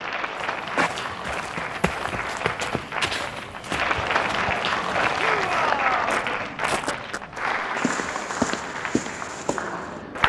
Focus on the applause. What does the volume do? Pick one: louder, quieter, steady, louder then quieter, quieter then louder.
louder then quieter.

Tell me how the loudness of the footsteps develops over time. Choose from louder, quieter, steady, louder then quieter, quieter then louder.
quieter then louder.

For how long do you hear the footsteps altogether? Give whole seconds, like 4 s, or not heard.
10 s.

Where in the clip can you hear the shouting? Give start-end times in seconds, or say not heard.
5.2-6.2.